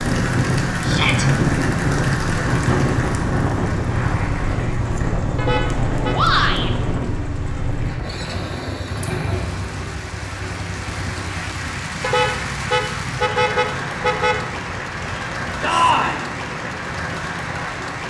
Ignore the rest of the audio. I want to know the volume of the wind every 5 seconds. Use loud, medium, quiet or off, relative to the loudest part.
loud, medium, quiet, quiet.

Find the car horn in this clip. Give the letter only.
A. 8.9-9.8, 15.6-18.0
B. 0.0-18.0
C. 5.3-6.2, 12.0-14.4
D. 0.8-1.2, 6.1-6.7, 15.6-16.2
C.